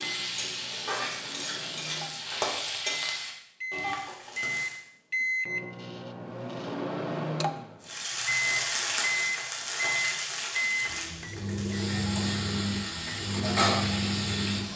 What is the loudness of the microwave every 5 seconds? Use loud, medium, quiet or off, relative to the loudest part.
medium, loud, loud.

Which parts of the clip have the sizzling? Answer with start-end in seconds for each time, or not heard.
0.0-4.8, 7.8-14.7.